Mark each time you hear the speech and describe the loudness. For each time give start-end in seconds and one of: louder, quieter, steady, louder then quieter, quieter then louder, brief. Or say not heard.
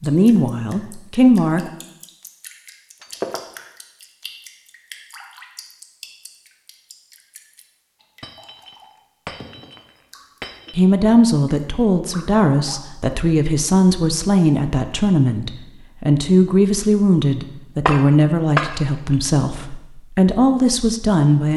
0.0-1.7 brief
10.8-21.5 steady.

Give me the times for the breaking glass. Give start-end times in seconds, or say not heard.
3.0-3.6, 8.2-10.8, 17.9-19.3.